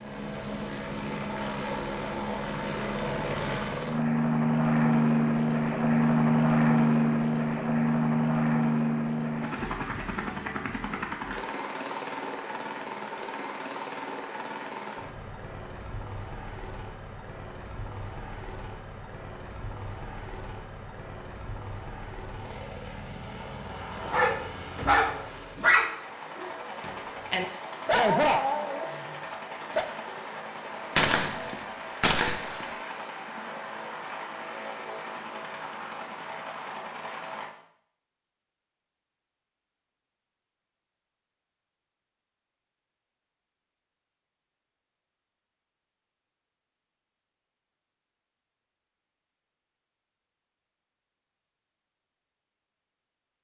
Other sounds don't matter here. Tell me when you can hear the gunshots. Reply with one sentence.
The gunshots can be heard from 30.9 to 32.6 s.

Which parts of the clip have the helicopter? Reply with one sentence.
The helicopter can be heard from 0.0 to 37.5 s.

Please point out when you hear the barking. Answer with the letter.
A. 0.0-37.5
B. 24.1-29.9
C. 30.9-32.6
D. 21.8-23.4
B.